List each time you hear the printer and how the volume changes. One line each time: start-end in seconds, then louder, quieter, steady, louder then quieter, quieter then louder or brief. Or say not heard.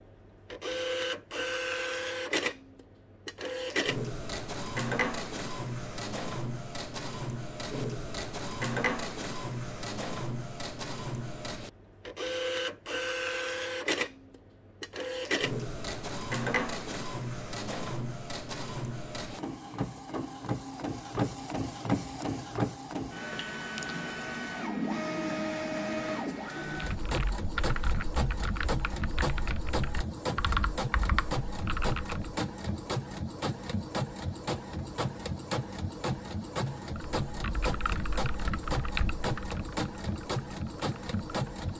0.0-41.7 steady.